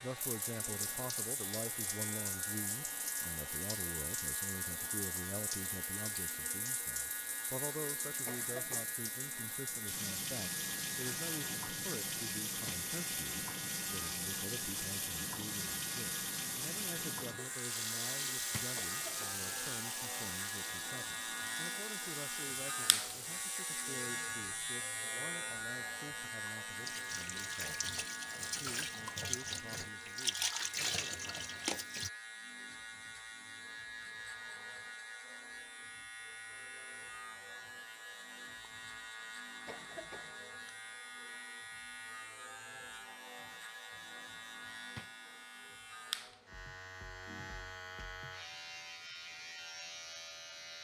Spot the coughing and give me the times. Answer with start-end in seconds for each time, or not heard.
8.2-8.9, 18.8-19.4, 39.6-40.4.